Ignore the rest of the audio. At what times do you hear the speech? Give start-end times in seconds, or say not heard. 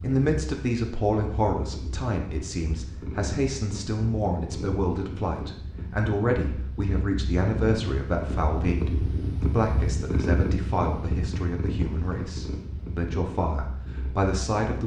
0.0-14.8.